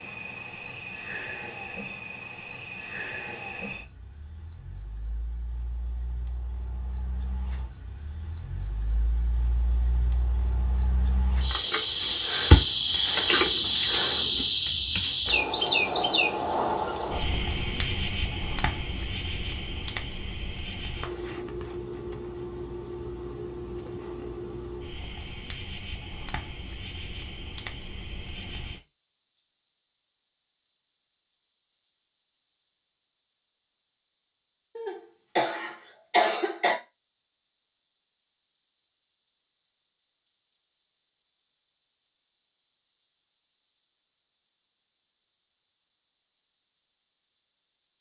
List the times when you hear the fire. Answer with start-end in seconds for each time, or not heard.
not heard.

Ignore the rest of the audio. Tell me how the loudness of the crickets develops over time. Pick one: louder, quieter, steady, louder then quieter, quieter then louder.
louder then quieter.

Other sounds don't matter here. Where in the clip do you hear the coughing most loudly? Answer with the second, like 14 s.
36 s.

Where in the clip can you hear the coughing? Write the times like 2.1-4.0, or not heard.
34.8-36.8.